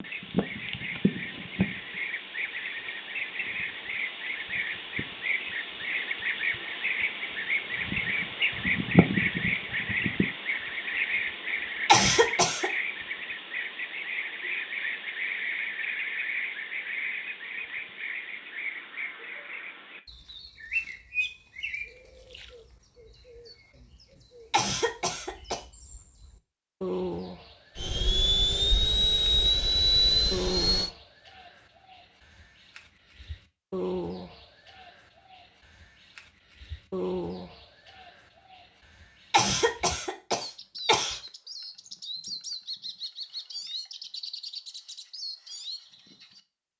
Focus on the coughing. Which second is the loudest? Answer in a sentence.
The volume of the coughing peaks at 12 seconds.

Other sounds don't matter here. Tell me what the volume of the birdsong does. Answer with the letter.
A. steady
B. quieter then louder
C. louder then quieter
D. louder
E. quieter
E.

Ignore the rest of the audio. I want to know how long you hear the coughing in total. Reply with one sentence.
The coughing can be heard for 4 seconds in total.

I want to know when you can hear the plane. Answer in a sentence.
You can hear the plane from 27.8 to 30.9 s.